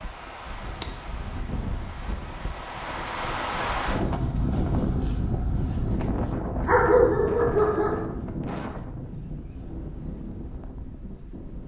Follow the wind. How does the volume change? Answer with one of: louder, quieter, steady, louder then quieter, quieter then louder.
louder then quieter.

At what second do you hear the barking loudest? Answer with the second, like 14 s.
7 s.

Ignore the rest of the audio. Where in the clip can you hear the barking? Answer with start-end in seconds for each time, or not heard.
6.7-8.2.